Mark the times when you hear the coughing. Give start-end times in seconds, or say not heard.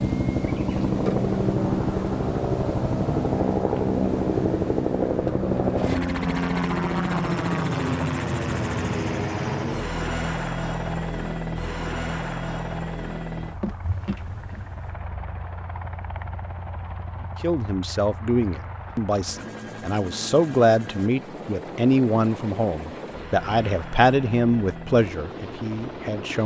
not heard.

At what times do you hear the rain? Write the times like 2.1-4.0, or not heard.
not heard.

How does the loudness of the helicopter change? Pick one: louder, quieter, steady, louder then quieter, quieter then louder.
quieter.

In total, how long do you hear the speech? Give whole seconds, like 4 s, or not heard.
9 s.